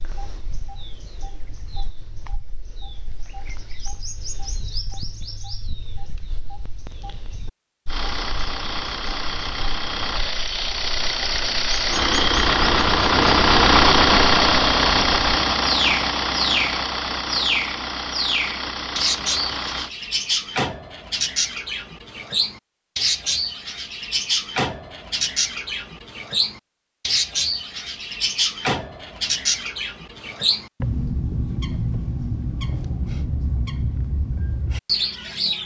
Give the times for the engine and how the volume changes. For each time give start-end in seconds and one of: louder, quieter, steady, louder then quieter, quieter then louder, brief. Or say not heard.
7.8-19.9 louder then quieter.